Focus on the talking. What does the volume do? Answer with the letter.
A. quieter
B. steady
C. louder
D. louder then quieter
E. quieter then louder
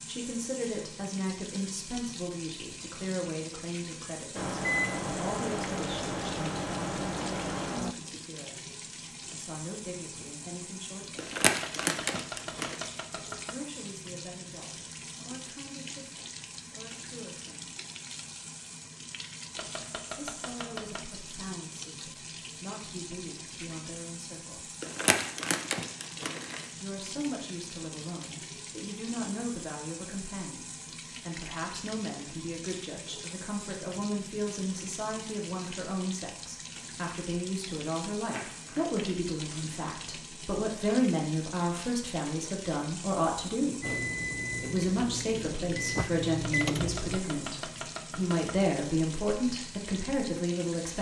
E.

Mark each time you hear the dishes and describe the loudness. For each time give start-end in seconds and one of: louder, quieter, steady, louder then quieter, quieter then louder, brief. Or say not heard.
not heard.